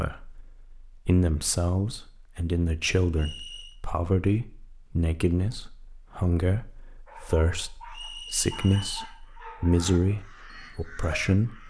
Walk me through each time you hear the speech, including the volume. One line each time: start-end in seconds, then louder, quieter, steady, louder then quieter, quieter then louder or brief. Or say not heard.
0.0-11.6 steady.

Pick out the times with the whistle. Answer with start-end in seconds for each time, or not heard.
3.1-3.8, 7.9-9.2.